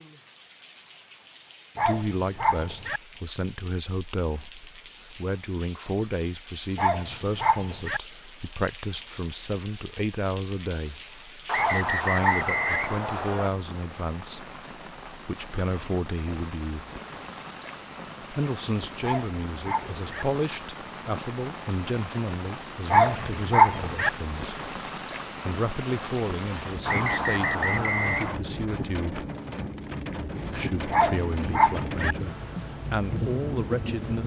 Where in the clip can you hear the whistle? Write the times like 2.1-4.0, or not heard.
11.4-13.5, 26.9-28.4.